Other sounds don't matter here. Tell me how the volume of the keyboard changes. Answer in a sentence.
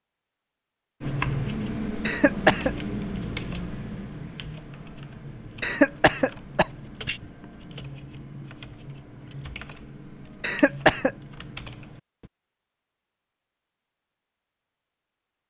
The loudness of the keyboard goes down.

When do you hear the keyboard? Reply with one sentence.
The keyboard can be heard from 1.0 to 12.3 s.